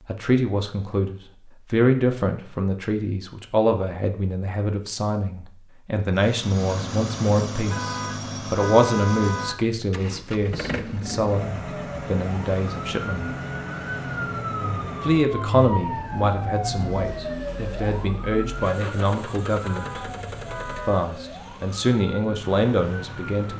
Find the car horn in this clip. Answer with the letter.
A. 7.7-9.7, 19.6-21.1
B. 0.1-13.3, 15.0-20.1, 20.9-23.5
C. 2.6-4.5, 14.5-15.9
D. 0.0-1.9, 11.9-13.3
A.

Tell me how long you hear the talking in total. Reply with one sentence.
You can hear the talking for 21 seconds altogether.